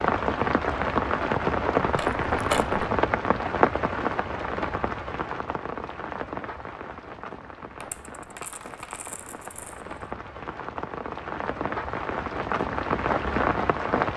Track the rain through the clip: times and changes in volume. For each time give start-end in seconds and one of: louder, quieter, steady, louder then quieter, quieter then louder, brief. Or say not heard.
0.0-14.1 quieter then louder.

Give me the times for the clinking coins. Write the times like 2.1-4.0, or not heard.
1.8-2.8, 7.8-9.8.